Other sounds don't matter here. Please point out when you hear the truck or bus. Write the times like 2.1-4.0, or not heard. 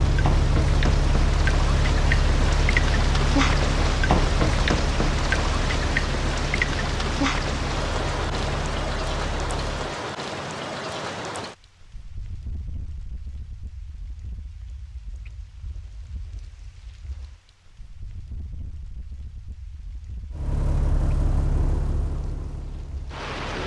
0.0-9.9, 20.3-23.6.